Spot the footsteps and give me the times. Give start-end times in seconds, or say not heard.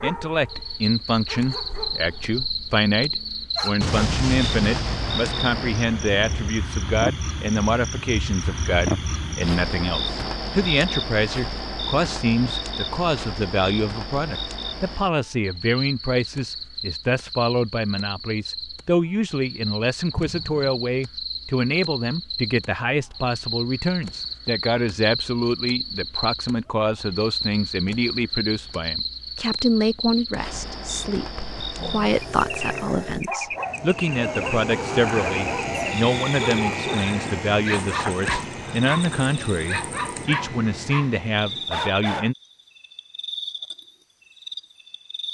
not heard.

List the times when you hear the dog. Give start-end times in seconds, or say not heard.
0.0-3.9, 31.8-42.3.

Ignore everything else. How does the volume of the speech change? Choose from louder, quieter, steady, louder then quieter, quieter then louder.
steady.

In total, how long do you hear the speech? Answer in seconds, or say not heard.
42 s.